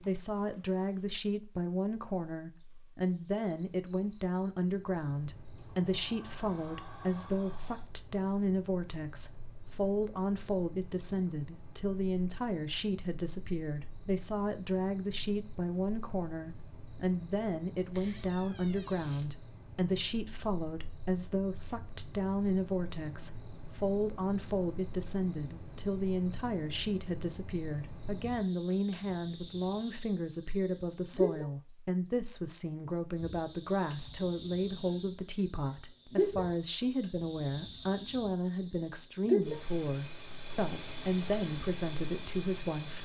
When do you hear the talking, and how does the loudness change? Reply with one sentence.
The talking can be heard from 0.0 to 42.9 s, at a steady volume.